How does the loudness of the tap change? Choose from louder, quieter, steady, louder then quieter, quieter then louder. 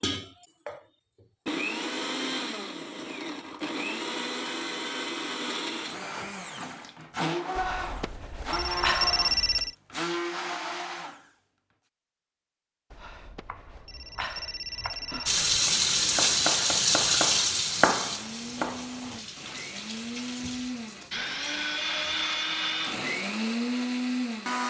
quieter.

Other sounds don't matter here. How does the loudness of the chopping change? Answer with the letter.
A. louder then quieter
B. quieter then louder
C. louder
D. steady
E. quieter
C.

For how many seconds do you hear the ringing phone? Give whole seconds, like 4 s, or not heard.
5 s.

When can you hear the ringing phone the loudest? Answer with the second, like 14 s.
9 s.